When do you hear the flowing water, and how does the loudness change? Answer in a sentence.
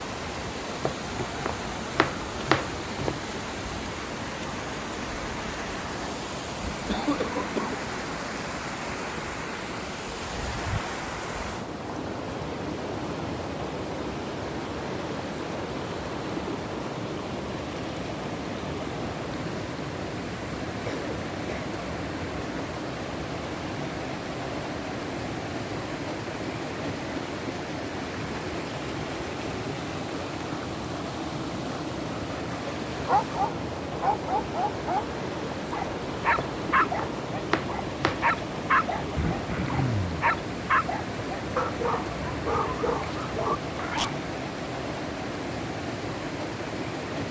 The flowing water can be heard from 0.0 to 47.2 s, at a steady volume.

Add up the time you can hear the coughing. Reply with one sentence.
The coughing can be heard for 3 seconds in total.